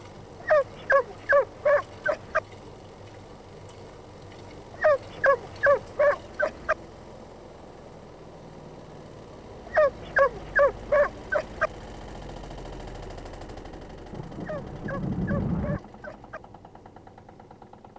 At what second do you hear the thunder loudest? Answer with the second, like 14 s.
15 s.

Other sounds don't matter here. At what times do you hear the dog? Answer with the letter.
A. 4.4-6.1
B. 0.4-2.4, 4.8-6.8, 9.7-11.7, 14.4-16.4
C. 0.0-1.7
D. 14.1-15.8
B.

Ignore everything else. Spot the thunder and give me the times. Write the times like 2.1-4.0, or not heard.
14.1-15.8.